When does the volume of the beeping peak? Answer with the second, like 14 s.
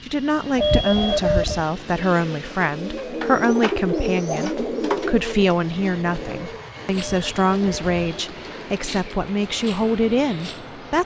1 s.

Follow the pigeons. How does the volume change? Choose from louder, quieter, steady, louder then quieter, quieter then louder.
louder then quieter.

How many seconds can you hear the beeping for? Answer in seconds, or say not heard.
2 s.